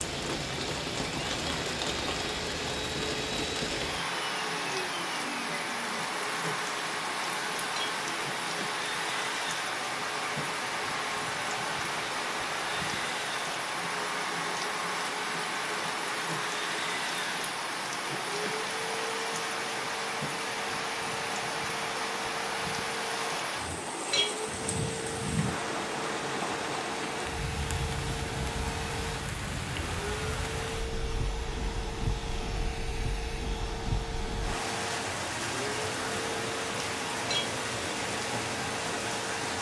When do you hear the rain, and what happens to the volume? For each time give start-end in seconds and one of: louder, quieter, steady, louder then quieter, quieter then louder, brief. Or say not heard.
0.0-39.5 steady.